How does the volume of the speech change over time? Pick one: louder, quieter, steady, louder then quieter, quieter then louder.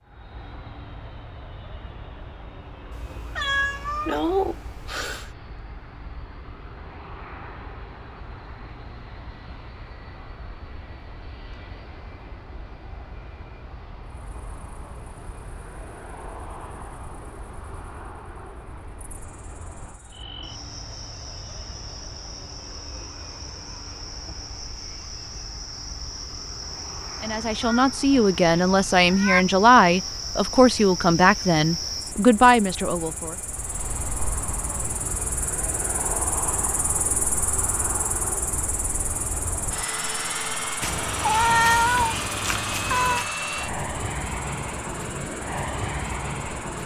steady.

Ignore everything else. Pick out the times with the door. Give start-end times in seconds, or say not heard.
not heard.